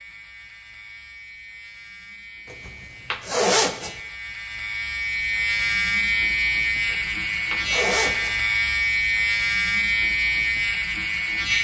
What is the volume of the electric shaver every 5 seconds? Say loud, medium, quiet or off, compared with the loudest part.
quiet, loud, loud.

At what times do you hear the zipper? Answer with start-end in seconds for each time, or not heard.
2.5-4.0, 6.9-8.3.